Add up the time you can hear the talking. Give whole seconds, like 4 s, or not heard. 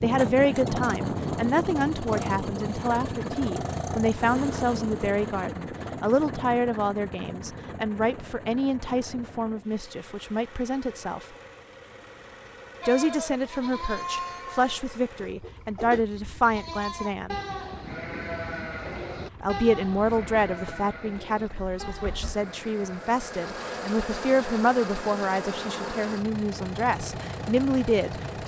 25 s.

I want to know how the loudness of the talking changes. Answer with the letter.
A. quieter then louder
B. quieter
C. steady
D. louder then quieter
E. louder
C.